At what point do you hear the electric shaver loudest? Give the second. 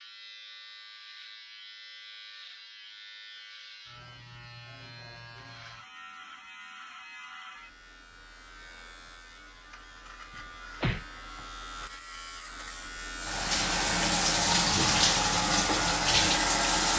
16 s.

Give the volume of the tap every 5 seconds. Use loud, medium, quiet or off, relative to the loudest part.
off, off, loud, loud.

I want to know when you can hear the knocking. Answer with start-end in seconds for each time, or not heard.
10.3-11.1.